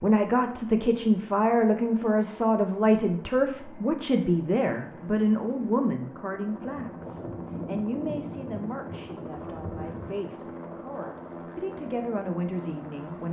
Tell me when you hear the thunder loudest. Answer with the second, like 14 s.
8 s.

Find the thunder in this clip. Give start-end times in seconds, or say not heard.
6.6-10.2.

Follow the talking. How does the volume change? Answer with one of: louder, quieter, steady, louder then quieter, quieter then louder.
quieter.